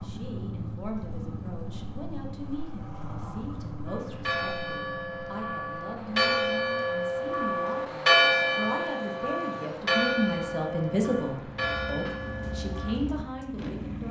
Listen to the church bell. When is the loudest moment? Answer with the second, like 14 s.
8 s.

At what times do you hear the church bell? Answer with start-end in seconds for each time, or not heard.
3.9-12.9.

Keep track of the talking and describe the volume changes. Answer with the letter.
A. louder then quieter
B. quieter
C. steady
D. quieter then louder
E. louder
E.